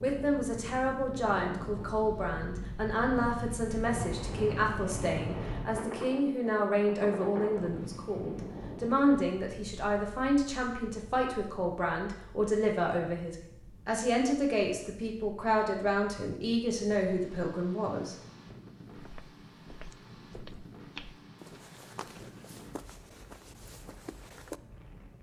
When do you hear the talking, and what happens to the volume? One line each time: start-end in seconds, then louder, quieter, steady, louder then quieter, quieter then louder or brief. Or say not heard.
0.0-18.1 steady.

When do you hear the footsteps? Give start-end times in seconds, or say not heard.
18.9-24.6.